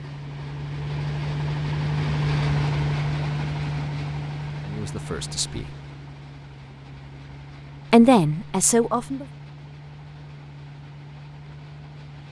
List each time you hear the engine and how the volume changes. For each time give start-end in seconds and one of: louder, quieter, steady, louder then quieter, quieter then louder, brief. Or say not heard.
0.0-12.2 quieter.